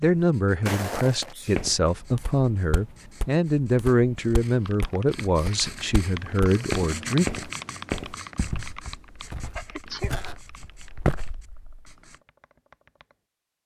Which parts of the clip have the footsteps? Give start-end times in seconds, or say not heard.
0.0-11.7.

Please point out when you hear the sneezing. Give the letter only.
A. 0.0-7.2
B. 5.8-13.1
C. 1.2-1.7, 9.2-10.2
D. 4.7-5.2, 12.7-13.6
C.